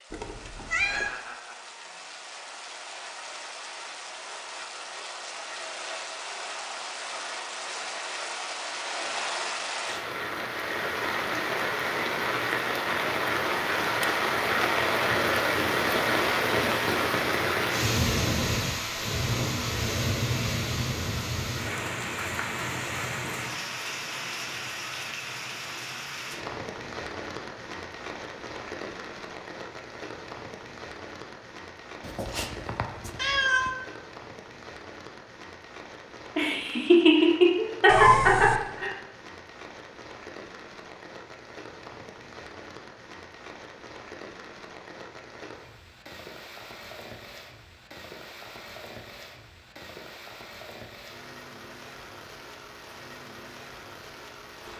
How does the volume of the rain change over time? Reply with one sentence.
The volume of the rain goes up, then down.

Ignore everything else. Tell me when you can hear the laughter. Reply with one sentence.
The laughter can be heard from 36.4 to 38.9 s.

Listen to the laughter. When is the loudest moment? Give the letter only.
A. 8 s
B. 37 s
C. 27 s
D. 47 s
B.